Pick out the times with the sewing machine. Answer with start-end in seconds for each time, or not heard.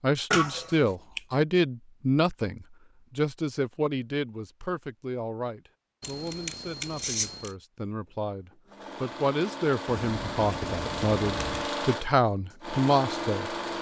8.5-13.7.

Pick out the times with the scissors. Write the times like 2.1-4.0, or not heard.
0.3-1.2, 6.0-7.5, 9.8-11.7.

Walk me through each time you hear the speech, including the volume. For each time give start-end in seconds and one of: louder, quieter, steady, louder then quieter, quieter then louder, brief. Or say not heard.
0.0-13.6 quieter then louder.